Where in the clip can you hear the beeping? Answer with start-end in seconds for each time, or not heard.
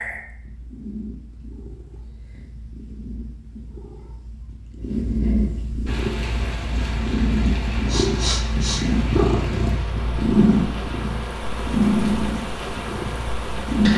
not heard.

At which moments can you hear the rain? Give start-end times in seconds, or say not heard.
5.8-13.9.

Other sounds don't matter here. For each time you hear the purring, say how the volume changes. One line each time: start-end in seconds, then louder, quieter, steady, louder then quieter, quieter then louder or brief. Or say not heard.
0.0-13.9 louder.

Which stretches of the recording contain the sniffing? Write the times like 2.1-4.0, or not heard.
7.8-8.8.